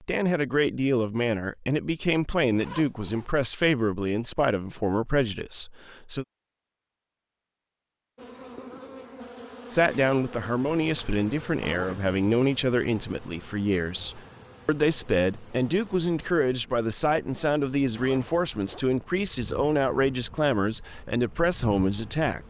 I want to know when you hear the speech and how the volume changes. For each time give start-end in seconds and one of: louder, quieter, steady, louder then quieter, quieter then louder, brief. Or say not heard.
0.0-6.2 steady
9.7-22.4 steady.